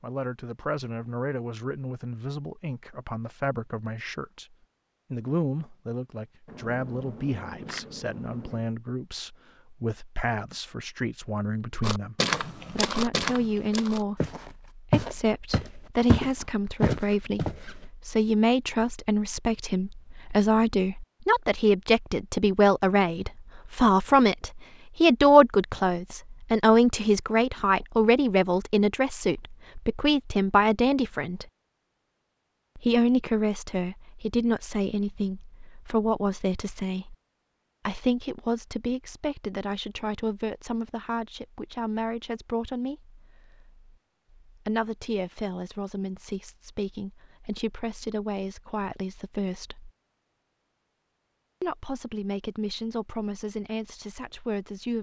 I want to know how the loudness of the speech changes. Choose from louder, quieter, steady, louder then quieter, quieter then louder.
louder then quieter.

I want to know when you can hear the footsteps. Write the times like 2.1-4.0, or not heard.
11.8-17.7.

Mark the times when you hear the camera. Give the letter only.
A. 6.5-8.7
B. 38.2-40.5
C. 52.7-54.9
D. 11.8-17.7
A.